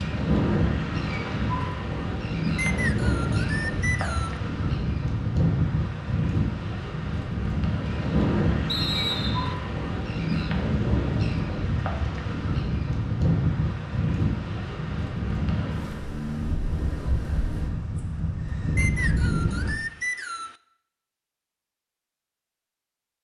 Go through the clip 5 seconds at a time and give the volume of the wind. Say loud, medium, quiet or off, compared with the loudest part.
loud, loud, loud, loud, off.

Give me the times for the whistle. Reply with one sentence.
You can hear the whistle from 2.5 to 4.4 s, from 8.7 to 9.6 s and from 18.8 to 20.6 s.